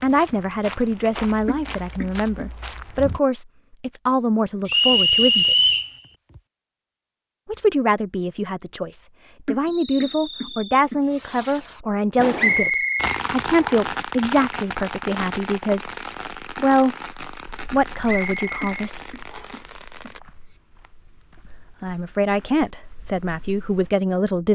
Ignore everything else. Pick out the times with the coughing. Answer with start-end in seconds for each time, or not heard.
1.4-2.5, 9.4-11.0, 18.6-20.1.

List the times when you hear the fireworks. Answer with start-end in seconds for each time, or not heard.
9.7-20.2.